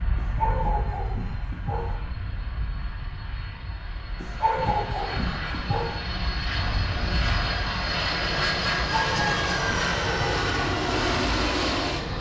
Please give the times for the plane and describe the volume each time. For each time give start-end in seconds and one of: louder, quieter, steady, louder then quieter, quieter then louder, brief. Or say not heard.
0.0-12.1 louder.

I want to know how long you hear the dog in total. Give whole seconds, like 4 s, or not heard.
5 s.